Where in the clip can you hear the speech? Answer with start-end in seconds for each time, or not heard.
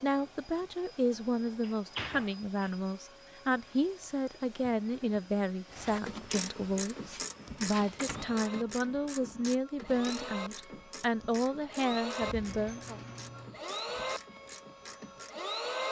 0.0-13.0.